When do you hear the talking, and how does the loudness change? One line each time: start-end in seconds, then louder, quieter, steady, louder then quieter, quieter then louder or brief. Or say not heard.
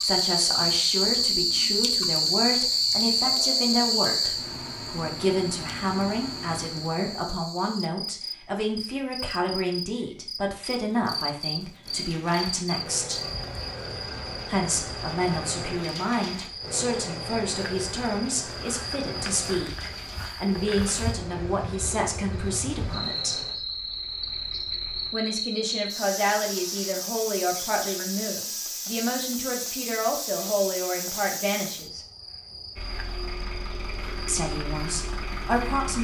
0.0-13.2 steady
14.4-23.4 steady
25.1-32.0 steady
34.2-35.9 brief.